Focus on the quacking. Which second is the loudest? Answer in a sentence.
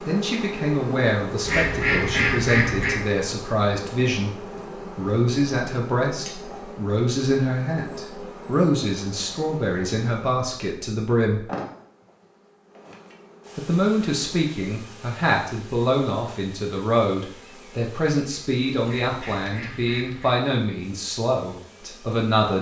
The volume of the quacking peaks at 2 seconds.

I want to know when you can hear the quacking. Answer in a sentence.
You can hear the quacking from 1.4 to 3.0 s and from 18.8 to 20.4 s.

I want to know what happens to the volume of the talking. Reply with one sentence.
The loudness of the talking stays about the same.